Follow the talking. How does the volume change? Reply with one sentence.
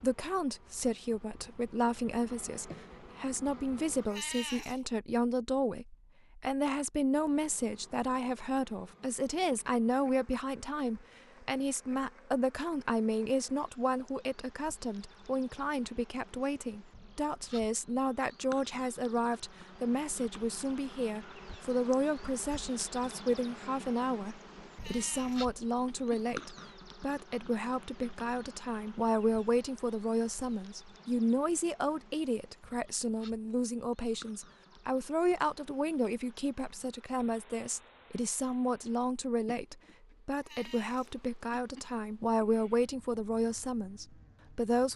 The loudness of the talking stays about the same.